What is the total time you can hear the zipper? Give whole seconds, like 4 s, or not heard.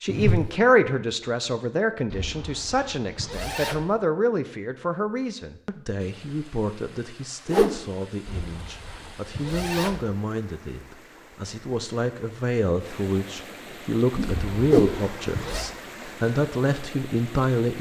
5 s.